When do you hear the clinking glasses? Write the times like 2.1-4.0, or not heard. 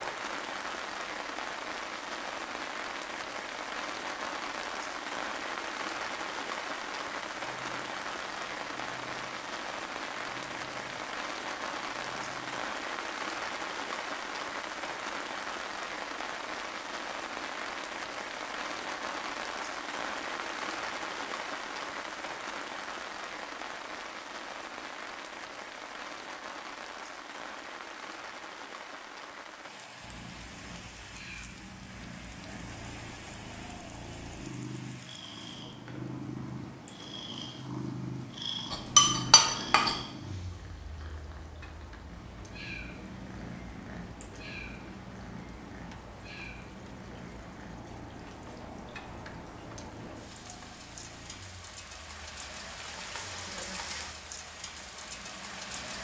38.7-40.0.